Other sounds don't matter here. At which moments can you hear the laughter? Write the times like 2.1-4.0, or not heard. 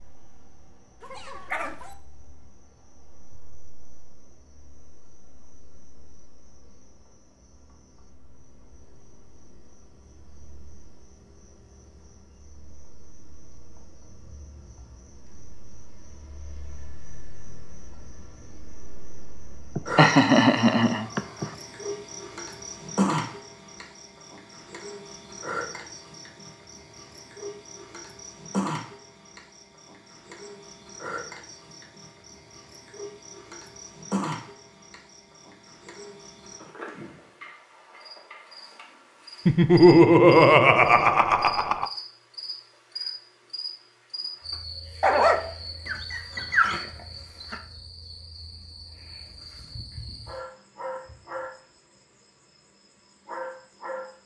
19.8-21.5, 39.5-41.9.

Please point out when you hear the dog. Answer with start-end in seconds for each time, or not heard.
1.0-1.9, 45.0-47.6.